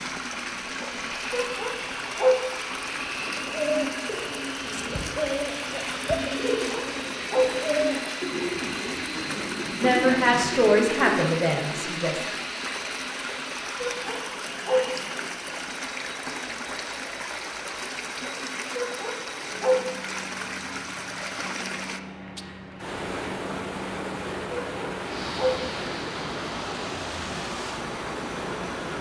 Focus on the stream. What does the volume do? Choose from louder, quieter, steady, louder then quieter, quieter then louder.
steady.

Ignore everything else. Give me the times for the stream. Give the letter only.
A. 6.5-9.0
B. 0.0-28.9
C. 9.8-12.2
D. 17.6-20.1
B.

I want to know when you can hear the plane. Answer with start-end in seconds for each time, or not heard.
0.0-28.9.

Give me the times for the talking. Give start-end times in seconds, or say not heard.
9.8-12.2.